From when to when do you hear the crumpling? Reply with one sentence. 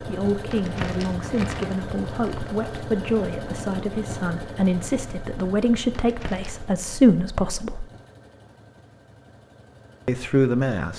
You can hear the crumpling from 0.5 to 2.5 s and from 5.9 to 6.7 s.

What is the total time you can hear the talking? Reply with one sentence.
The talking can be heard for 9 seconds in total.